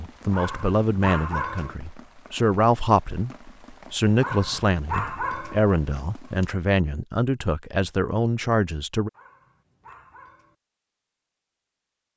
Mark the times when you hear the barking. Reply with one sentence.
You can hear the barking from 0.3 to 1.8 s, from 4.2 to 5.6 s and from 9.1 to 10.6 s.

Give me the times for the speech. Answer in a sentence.
The speech can be heard from 0.0 to 3.3 s and from 3.9 to 9.1 s.